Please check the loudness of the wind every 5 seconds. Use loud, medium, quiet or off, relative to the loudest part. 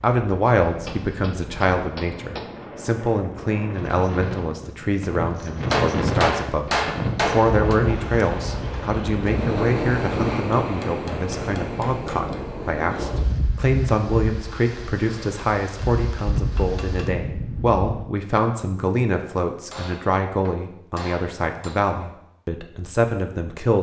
medium, loud, loud, medium, off.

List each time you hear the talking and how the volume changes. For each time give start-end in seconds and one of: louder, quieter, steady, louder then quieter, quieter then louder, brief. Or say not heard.
0.0-23.7 steady.